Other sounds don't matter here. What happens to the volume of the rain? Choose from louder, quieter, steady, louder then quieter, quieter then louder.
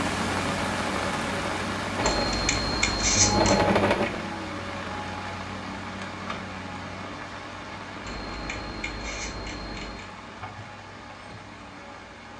quieter.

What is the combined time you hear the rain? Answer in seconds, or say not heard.
12 s.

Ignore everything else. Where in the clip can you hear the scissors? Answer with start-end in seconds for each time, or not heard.
2.0-3.6, 8.0-10.1.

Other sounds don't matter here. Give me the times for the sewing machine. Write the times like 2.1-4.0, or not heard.
1.9-4.2.